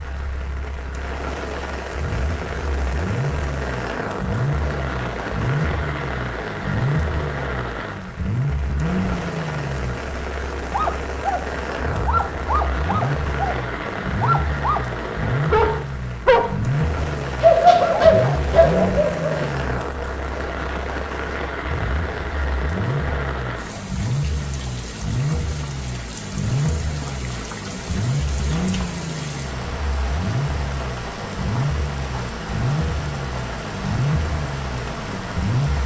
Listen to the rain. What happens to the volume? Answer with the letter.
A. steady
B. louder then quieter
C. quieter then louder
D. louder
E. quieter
A.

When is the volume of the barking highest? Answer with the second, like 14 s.
18 s.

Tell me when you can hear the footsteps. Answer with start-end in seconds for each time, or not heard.
not heard.